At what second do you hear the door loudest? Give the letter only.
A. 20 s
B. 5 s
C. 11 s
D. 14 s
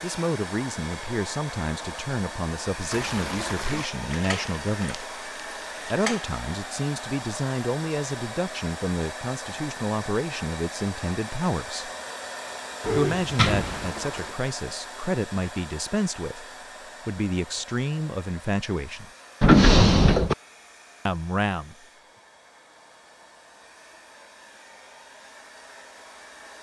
A.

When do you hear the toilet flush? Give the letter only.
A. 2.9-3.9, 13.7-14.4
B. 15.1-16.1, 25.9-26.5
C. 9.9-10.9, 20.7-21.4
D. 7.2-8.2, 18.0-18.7
A.